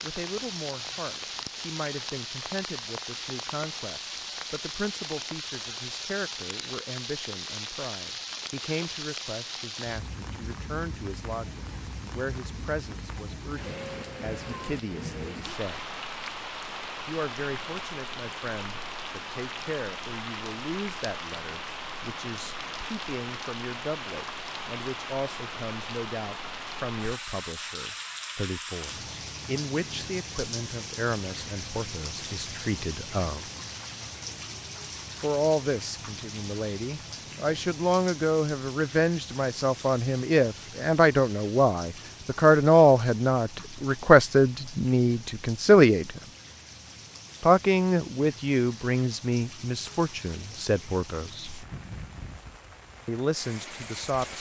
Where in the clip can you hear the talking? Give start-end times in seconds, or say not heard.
0.0-15.8, 17.1-33.5, 35.2-46.2, 47.4-51.5, 53.0-54.3.